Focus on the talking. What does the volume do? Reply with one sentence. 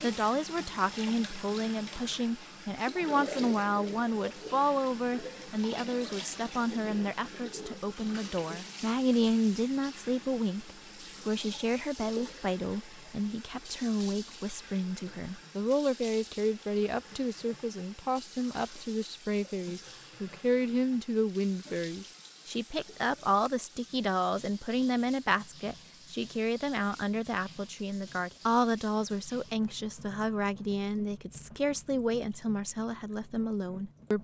The volume of the talking stays about the same.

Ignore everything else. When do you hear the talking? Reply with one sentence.
You can hear the talking from 0.0 to 34.2 s.